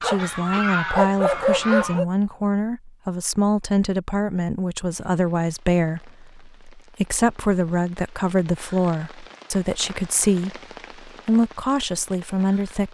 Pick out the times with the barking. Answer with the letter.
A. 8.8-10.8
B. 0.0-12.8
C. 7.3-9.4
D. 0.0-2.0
D.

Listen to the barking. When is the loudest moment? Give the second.
1 s.